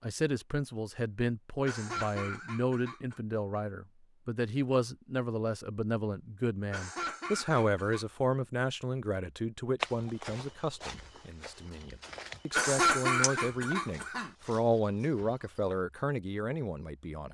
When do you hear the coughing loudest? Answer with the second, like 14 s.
13 s.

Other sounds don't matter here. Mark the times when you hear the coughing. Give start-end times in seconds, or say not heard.
1.6-3.2, 6.7-8.1, 12.5-14.3.